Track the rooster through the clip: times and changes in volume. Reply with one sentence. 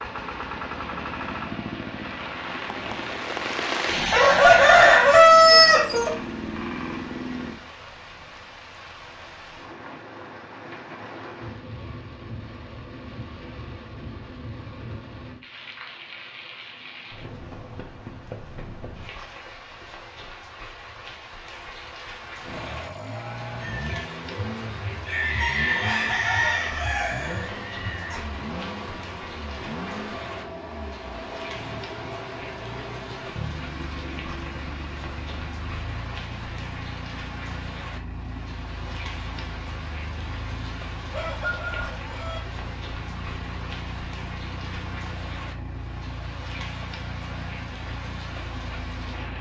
The rooster can be heard briefly from 4.1 to 6.1 s; from 23.6 to 28.2 s, getting louder then quieter; and briefly from 41.1 to 42.4 s.